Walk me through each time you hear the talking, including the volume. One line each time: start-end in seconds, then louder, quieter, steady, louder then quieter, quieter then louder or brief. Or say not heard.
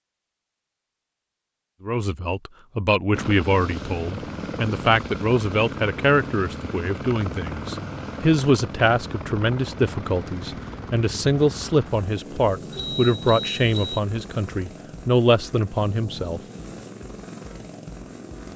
1.8-16.4 steady.